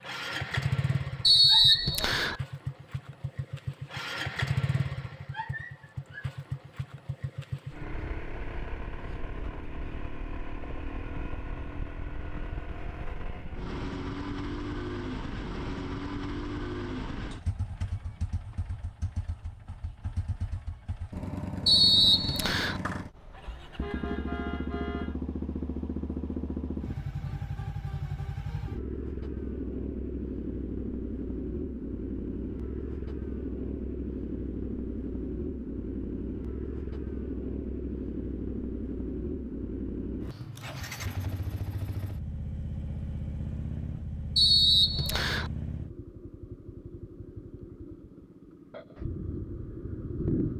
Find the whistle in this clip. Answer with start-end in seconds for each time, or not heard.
1.2-2.4, 21.6-22.8, 44.4-45.5.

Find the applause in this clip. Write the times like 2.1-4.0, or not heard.
not heard.